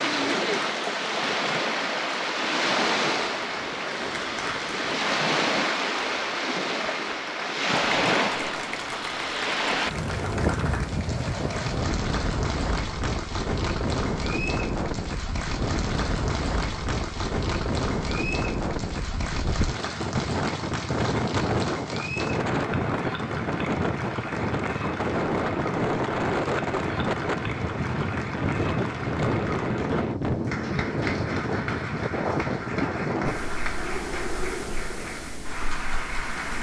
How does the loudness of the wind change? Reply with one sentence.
The volume of the wind stays about the same.